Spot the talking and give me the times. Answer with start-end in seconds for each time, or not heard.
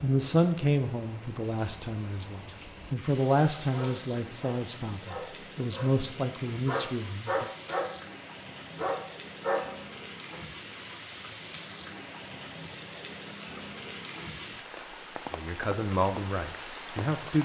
0.0-7.5, 15.3-17.4.